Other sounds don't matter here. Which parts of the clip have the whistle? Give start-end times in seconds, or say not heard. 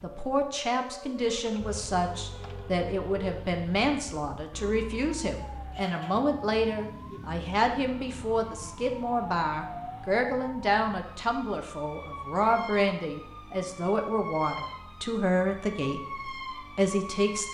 not heard.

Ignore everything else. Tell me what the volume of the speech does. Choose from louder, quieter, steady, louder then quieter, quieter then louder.
steady.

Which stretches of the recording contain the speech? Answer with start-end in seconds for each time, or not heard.
0.0-17.4.